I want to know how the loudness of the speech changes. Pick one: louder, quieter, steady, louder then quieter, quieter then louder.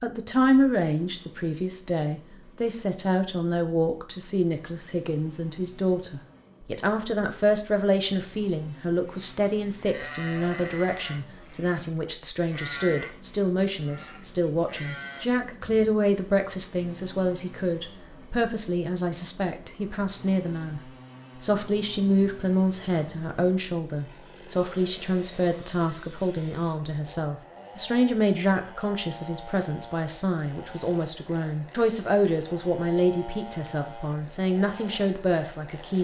steady.